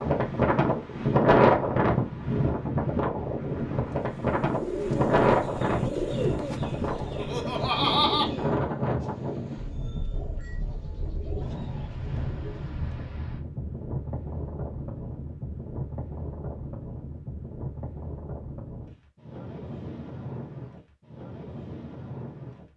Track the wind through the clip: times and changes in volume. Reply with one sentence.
The wind can be heard from 0.0 to 22.7 s, getting quieter.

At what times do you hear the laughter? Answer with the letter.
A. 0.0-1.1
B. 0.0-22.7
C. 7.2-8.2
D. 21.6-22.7
C.